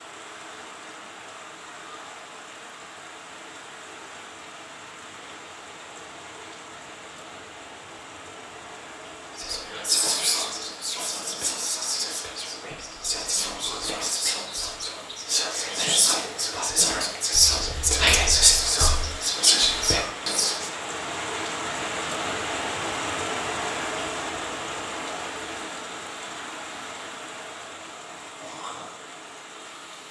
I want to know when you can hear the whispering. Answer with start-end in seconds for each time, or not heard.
9.3-20.7.